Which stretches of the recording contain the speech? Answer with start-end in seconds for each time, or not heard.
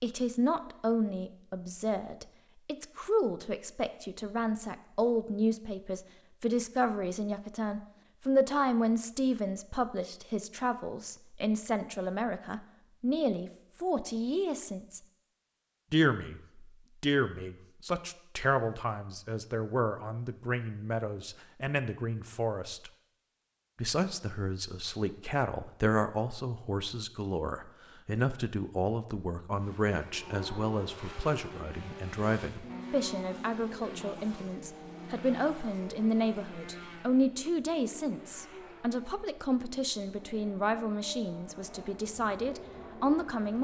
0.0-15.0, 15.9-22.9, 23.8-43.5.